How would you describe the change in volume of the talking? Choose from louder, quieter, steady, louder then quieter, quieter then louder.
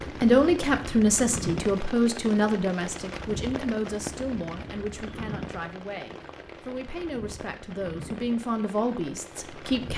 quieter then louder.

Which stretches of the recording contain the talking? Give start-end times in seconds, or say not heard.
0.0-9.9.